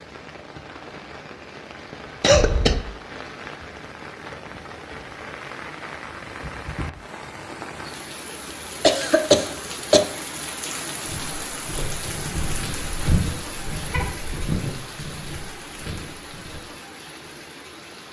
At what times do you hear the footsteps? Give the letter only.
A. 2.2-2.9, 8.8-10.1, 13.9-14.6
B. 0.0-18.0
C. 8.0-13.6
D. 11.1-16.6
D.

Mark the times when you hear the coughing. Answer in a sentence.
The coughing can be heard from 2.2 to 2.9 s, from 8.8 to 10.1 s and from 13.9 to 14.6 s.